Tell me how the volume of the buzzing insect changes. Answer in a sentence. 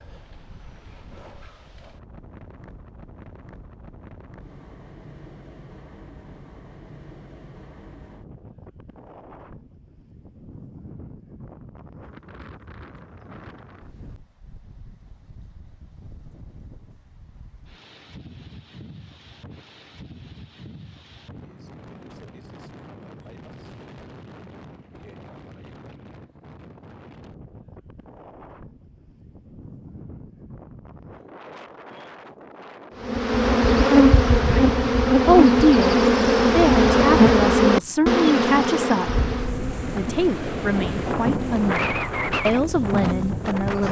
The loudness of the buzzing insect goes down.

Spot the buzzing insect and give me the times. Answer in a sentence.
The buzzing insect can be heard from 33.0 to 43.8 s.